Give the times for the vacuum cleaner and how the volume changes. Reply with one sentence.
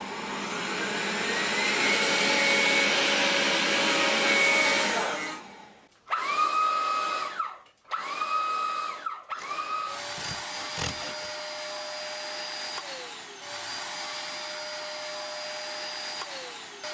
You can hear the vacuum cleaner from 0.0 to 16.8 s, getting quieter.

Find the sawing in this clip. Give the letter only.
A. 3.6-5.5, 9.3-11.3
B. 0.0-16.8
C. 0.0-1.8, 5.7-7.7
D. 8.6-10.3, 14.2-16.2
A.